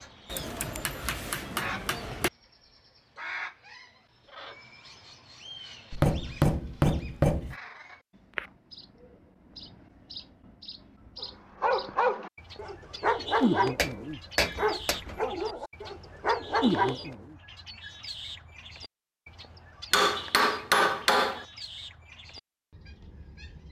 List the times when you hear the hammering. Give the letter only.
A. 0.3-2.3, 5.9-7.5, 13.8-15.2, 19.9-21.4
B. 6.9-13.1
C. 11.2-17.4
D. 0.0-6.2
A.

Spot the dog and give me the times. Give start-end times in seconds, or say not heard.
11.2-17.4.